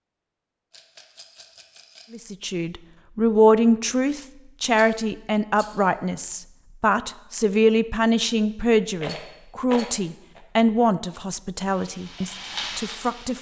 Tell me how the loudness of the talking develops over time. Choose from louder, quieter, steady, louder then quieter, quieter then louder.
quieter.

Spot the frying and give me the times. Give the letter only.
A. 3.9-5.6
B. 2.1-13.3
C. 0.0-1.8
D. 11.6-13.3
D.